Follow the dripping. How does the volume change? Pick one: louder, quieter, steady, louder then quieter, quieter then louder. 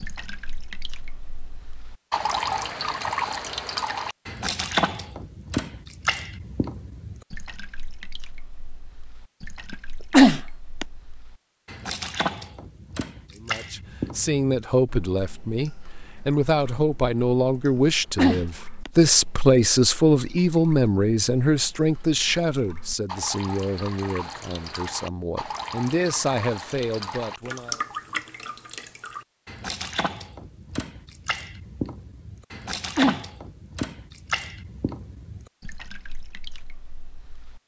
quieter then louder.